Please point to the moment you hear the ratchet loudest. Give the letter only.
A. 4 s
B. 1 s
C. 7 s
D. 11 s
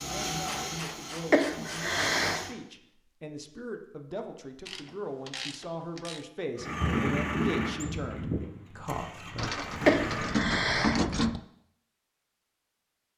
D.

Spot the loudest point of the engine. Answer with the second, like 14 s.
7 s.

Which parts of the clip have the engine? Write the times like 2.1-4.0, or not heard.
0.0-2.5, 6.5-10.4.